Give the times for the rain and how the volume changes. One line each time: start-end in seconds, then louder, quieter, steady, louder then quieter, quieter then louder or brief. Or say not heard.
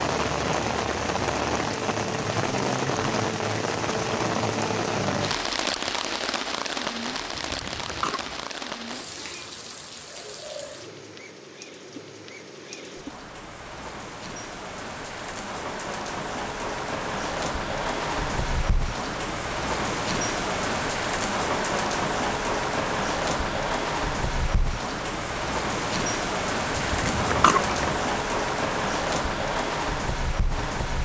0.0-31.0 quieter then louder.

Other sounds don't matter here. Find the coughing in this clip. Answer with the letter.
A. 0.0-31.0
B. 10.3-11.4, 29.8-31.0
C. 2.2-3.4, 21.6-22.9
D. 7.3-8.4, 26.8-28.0
D.